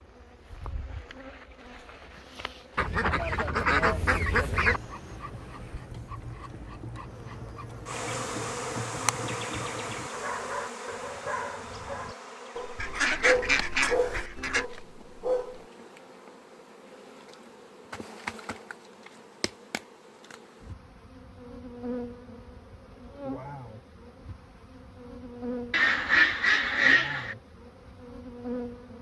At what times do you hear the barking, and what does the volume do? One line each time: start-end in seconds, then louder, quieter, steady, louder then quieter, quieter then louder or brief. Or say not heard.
4.7-15.7 louder.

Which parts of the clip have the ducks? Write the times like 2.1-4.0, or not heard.
2.8-4.8, 12.8-14.7, 25.7-27.4.